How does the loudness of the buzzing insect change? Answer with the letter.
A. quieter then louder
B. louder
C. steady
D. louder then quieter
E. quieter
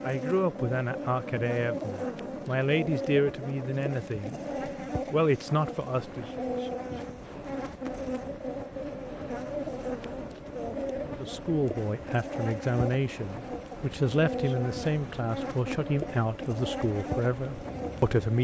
C.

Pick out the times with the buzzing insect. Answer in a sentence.
You can hear the buzzing insect from 0.0 to 18.3 s.